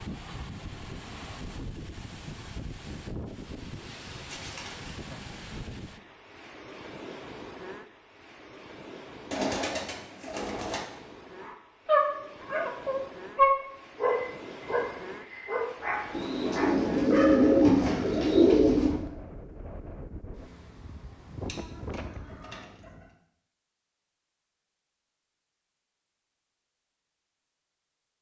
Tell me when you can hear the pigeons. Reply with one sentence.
The pigeons can be heard from 3.8 to 5.0 s, from 9.3 to 10.8 s, from 16.1 to 19.0 s and from 21.4 to 23.1 s.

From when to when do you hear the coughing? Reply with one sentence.
The coughing can't be heard in this clip.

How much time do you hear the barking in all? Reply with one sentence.
The barking can be heard for 6 seconds in total.